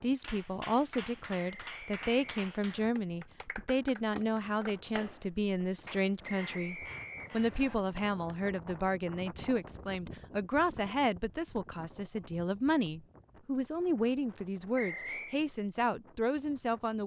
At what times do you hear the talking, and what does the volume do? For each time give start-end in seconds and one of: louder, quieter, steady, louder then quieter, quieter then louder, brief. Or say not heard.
0.0-17.0 steady.